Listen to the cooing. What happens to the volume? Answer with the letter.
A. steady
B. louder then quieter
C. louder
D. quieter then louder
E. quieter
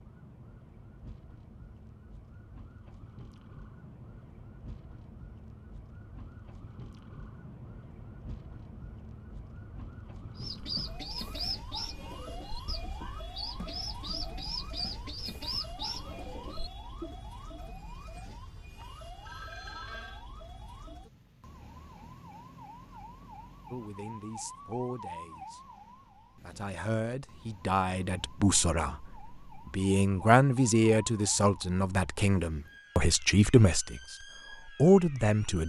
D.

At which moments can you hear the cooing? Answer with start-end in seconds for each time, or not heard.
10.3-17.1.